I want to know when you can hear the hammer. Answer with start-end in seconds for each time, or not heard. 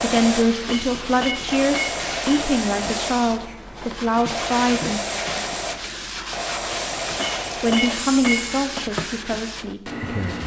0.7-2.5, 7.2-8.9.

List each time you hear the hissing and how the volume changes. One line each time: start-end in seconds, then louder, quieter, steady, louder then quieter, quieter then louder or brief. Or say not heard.
0.0-8.7 steady.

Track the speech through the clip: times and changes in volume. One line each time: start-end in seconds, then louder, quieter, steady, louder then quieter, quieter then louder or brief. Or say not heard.
0.0-5.0 steady
7.6-10.4 brief.